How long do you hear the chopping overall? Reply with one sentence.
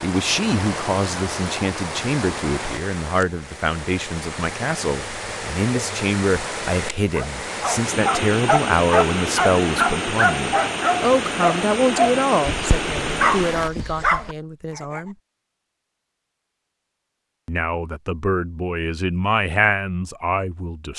You can't hear the chopping here.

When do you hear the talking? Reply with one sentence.
The talking can be heard from 0.0 to 15.2 s and from 17.4 to 20.9 s.